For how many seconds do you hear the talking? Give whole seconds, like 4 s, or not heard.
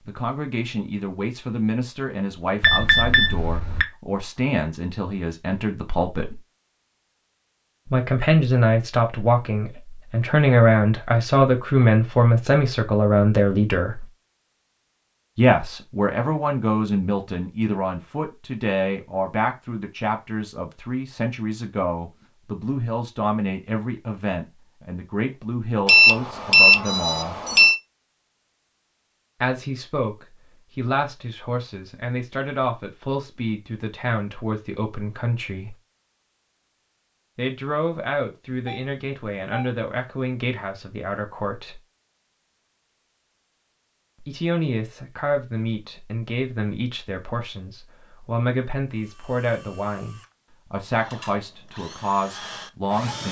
44 s.